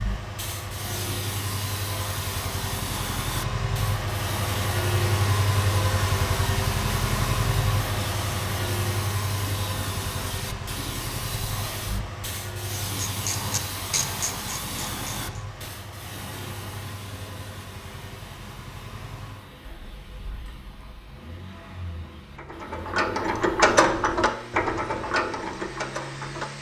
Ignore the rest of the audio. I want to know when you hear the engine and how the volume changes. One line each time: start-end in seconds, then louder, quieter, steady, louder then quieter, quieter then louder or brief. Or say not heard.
0.0-26.5 quieter.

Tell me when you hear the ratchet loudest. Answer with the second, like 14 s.
24 s.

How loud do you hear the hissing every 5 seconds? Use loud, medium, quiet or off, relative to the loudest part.
loud, loud, loud, medium, quiet, medium.